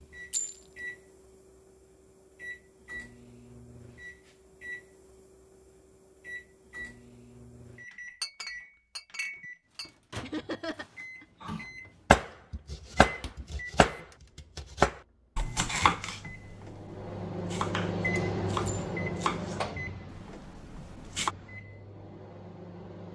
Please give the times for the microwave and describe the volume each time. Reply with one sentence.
You can hear the microwave from 0.0 to 23.1 s, getting louder.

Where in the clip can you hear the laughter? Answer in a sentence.
You can hear the laughter from 10.2 to 11.5 s.